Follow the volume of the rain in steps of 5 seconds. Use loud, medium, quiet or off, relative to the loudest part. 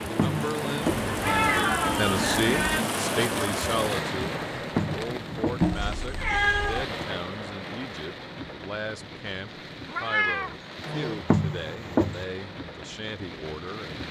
loud, medium, medium.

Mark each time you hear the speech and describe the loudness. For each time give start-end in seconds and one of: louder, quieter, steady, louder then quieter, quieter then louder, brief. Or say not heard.
0.1-14.0 quieter.